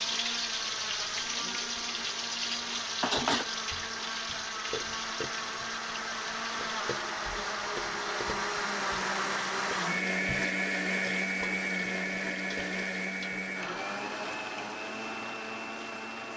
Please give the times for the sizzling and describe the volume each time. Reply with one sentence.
The sizzling can be heard from 0.0 to 16.3 s, getting quieter.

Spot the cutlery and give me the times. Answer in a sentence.
The cutlery can be heard from 2.0 to 3.5 s.